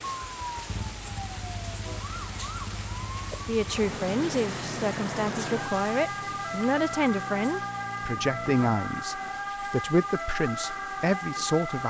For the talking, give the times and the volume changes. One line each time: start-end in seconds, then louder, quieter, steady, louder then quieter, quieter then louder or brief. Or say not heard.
3.5-11.8 steady.